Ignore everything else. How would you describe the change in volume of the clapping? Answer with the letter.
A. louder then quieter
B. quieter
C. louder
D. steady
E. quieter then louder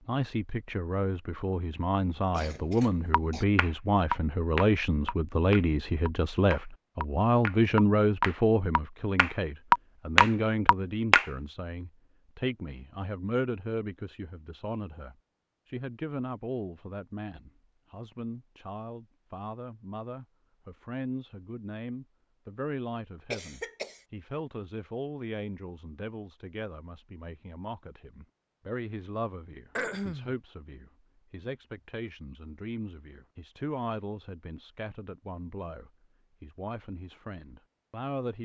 E.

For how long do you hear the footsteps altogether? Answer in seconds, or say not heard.
not heard.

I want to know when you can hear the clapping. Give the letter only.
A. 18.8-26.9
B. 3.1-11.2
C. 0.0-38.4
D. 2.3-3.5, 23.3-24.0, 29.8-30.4
B.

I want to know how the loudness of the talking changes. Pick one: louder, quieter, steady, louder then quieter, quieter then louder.
quieter.